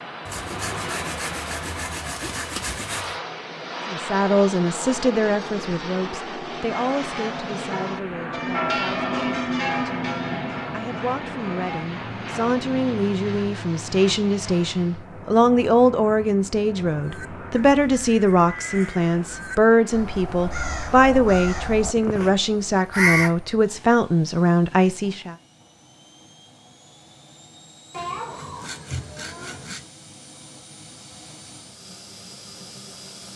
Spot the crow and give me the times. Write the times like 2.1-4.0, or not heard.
17.0-23.4.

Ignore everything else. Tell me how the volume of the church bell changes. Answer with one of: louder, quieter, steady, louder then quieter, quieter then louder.
louder then quieter.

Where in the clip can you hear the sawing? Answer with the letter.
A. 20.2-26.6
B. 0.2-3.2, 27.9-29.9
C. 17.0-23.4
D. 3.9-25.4
B.